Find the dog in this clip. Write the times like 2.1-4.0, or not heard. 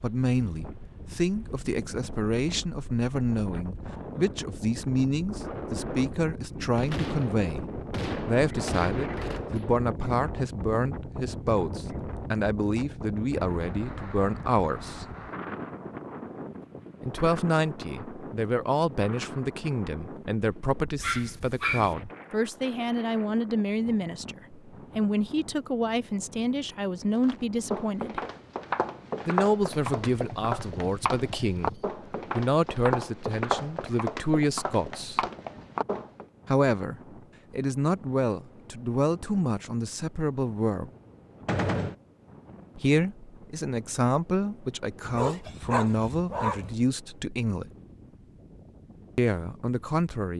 21.0-21.9, 45.0-46.8.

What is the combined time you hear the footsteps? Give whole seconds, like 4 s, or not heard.
9 s.